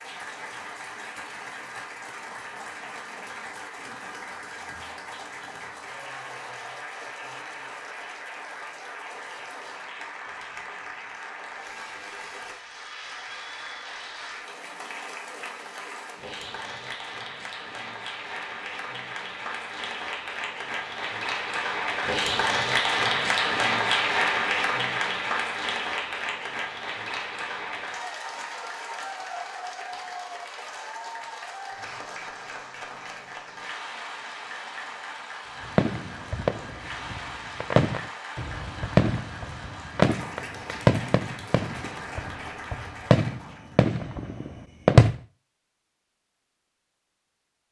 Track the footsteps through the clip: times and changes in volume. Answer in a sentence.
You can't hear the footsteps here.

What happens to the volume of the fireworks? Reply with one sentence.
The loudness of the fireworks goes down, then up.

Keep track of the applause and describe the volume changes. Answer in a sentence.
The volume of the applause goes up, then down.